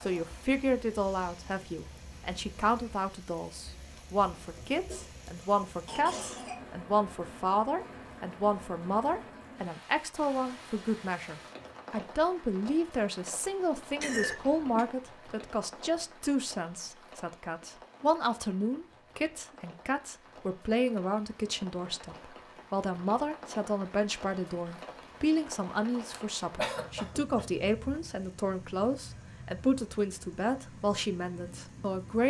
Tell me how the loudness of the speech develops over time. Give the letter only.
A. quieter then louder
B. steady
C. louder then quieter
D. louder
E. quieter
B.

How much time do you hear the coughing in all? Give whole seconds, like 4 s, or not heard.
5 s.